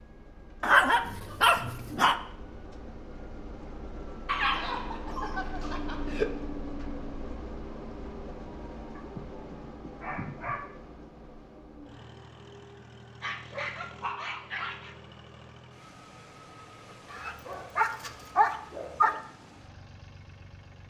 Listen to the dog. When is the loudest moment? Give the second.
1 s.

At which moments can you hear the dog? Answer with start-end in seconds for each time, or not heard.
0.6-2.1, 4.2-6.3, 8.9-10.7, 13.2-14.9, 17.1-19.2.